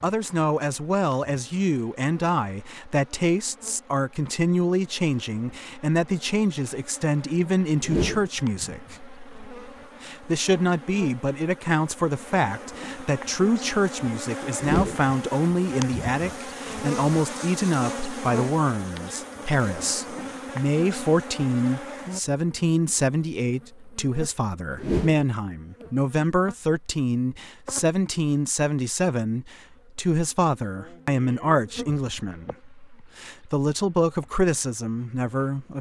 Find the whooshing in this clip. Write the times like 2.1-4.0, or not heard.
7.8-8.3, 14.6-15.1, 24.8-25.2.